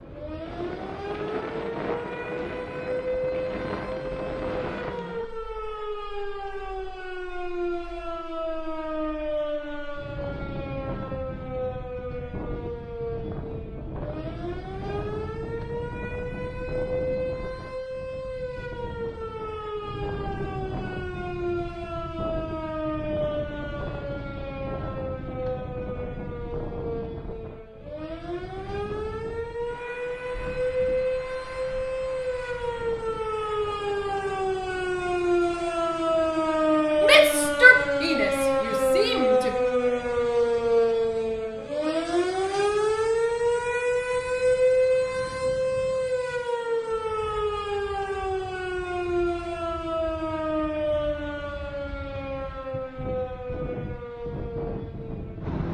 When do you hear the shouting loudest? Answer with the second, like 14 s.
38 s.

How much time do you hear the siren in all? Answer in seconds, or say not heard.
56 s.